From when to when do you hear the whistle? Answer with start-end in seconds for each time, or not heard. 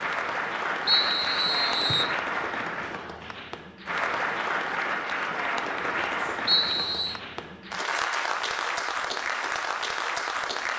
0.8-2.1, 6.5-7.2.